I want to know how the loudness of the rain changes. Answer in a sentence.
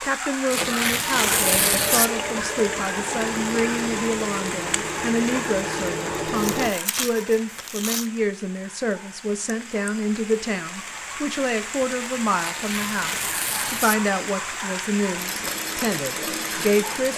The loudness of the rain goes down, then up.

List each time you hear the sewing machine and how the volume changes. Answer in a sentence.
The sewing machine can be heard from 0.0 to 6.7 s, at a steady volume; and briefly from 15.2 to 17.1 s.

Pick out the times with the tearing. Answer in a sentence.
You can hear the tearing from 0.5 to 2.1 s, from 6.3 to 8.1 s and from 12.3 to 14.0 s.